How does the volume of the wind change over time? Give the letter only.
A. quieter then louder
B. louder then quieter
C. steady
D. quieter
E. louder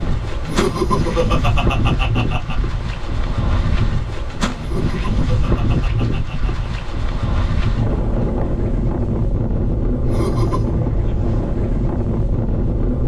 C.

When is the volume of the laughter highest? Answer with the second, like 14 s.
1 s.